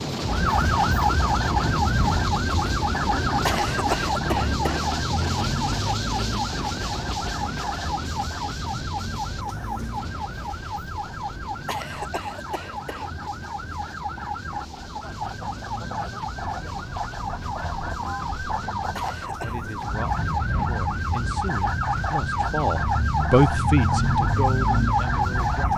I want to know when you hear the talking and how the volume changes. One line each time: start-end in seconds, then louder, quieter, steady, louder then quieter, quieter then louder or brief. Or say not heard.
19.4-25.6 louder then quieter.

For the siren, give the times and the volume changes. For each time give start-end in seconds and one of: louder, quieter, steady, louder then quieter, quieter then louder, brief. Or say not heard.
0.1-25.7 quieter then louder.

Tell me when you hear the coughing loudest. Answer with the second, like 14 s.
4 s.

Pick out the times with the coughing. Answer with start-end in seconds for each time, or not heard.
3.5-4.8, 11.7-13.1, 18.9-19.6.